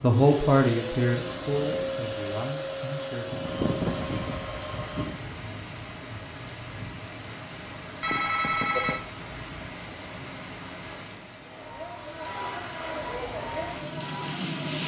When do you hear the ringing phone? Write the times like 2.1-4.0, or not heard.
3.4-5.2, 8.0-9.0.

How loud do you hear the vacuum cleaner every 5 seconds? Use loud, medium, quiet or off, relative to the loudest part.
loud, off, loud.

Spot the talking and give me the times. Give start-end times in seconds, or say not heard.
0.0-3.4.